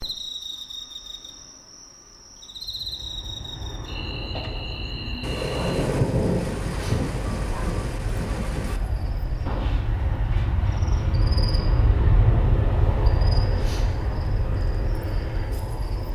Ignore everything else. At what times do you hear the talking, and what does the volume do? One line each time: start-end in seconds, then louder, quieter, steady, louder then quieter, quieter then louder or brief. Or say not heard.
not heard.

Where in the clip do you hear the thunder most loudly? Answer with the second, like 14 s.
6 s.